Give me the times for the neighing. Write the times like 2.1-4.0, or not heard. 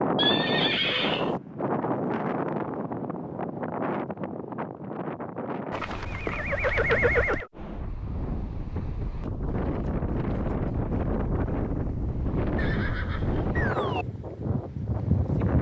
0.1-1.4, 5.7-7.5, 12.6-14.1.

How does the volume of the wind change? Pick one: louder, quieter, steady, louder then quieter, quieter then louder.
quieter then louder.